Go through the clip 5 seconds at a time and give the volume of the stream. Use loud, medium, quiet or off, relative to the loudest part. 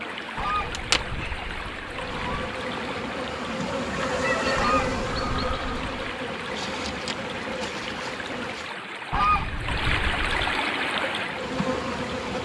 medium, medium, loud.